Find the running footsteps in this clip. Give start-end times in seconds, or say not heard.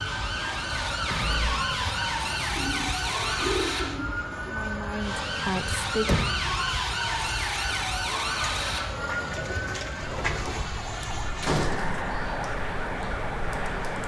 not heard.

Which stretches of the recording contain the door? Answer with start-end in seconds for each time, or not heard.
1.1-1.5, 6.0-6.5, 11.4-12.1.